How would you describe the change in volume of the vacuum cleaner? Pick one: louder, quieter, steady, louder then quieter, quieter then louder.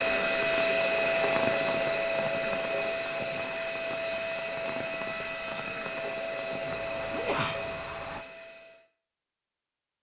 quieter.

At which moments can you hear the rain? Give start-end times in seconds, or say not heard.
0.2-8.2.